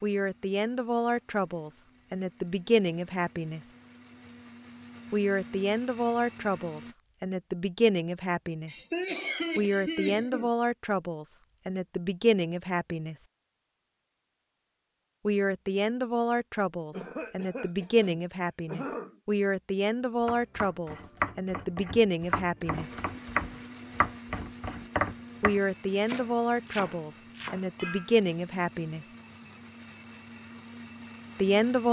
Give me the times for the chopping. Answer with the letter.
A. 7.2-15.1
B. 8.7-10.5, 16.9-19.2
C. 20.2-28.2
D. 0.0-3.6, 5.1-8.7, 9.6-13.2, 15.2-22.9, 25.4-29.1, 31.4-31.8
C.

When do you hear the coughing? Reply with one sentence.
You can hear the coughing from 8.7 to 10.5 s and from 16.9 to 19.2 s.